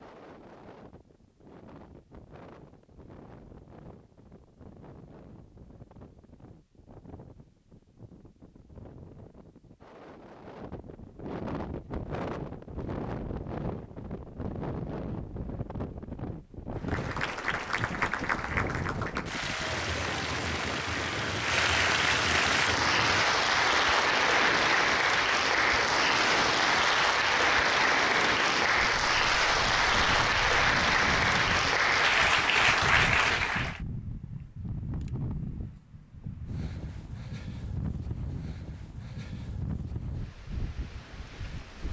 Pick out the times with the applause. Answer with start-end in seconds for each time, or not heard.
16.8-33.8.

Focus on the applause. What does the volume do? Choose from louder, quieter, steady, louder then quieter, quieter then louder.
louder.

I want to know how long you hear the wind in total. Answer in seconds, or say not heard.
42 s.